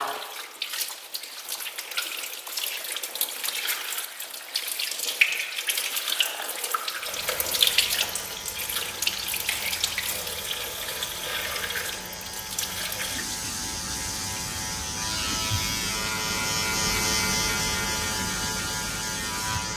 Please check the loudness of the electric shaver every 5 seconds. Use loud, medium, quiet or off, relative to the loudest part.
off, quiet, medium, loud.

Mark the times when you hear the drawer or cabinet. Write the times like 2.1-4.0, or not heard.
not heard.